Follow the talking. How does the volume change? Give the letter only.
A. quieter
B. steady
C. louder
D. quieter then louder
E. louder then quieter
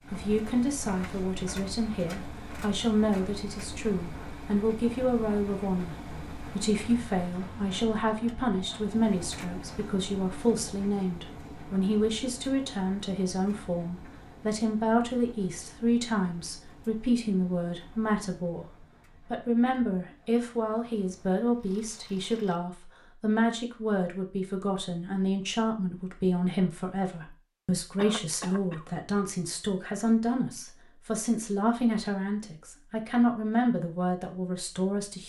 B.